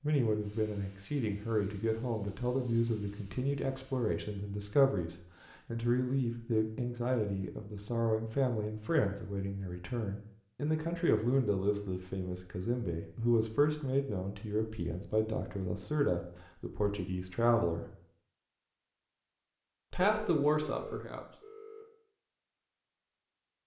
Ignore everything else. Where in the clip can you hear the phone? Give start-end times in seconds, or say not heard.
20.0-21.9.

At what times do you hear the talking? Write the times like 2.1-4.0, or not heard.
0.0-17.9, 19.9-21.2.